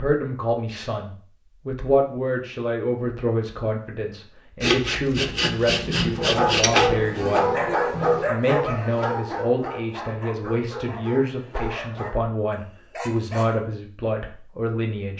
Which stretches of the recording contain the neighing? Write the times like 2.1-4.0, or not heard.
not heard.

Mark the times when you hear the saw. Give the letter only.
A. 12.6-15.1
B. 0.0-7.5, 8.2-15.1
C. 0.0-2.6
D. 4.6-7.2
D.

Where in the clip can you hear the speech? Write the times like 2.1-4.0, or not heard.
0.0-7.5, 8.2-15.1.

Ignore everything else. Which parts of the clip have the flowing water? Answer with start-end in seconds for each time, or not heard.
not heard.